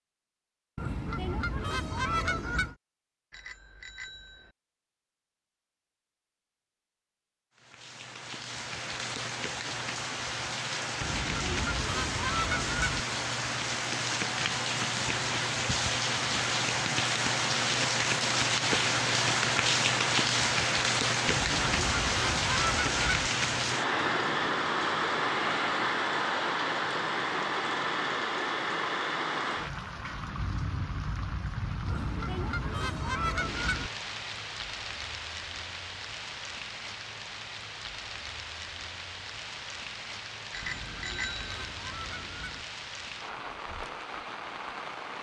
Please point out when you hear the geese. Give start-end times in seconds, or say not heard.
0.8-2.8, 11.0-13.1, 21.2-23.3, 31.9-33.9, 40.6-42.6.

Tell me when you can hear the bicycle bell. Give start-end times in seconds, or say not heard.
3.3-4.5, 40.5-41.7.